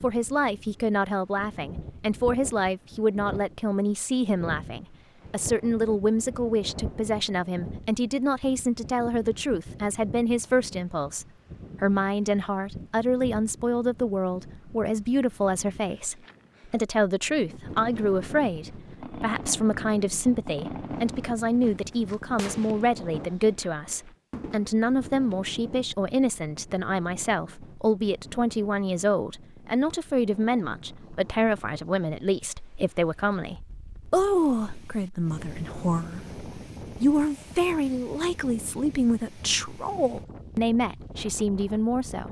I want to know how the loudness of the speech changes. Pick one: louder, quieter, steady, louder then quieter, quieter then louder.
steady.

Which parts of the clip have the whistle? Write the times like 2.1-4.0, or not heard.
not heard.